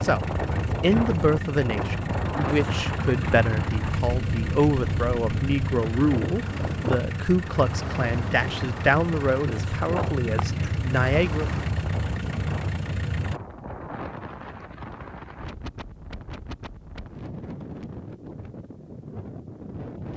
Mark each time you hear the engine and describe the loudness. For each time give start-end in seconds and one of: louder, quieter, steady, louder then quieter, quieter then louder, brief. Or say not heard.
0.0-13.4 steady.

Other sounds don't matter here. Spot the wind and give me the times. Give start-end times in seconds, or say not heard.
0.0-20.1.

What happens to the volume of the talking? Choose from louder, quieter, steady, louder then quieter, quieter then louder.
steady.